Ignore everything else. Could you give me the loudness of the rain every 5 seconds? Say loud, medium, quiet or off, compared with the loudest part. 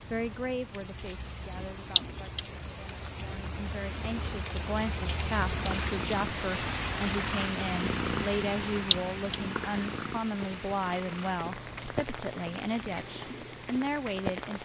medium, loud, loud.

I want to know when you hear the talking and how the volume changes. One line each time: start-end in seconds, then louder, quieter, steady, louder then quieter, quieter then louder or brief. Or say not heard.
0.1-14.6 louder.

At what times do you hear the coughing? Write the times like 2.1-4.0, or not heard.
1.9-2.4, 8.9-9.3.